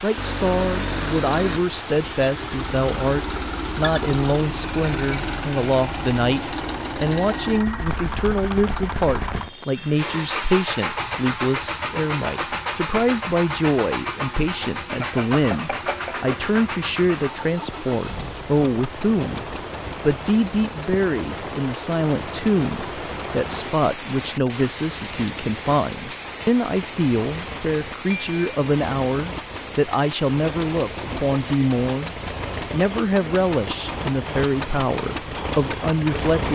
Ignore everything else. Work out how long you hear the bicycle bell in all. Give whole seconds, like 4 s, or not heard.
3 s.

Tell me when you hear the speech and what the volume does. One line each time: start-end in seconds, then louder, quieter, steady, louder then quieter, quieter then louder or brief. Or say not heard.
0.0-36.4 steady.